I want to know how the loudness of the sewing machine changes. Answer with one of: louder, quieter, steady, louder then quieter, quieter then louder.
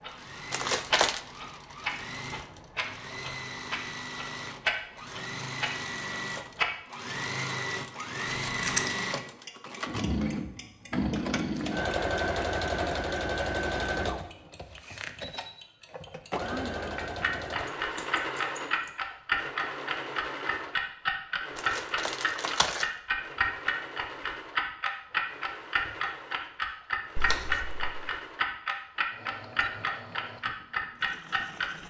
louder then quieter.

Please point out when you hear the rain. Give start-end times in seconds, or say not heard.
not heard.